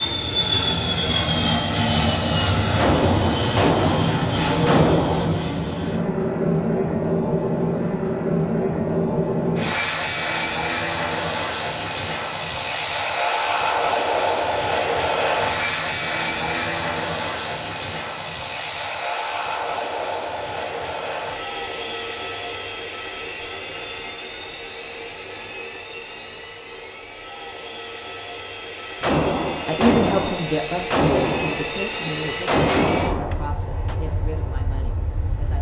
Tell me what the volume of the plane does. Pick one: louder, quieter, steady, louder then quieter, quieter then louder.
quieter.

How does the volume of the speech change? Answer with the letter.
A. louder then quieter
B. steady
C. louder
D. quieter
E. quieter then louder
D.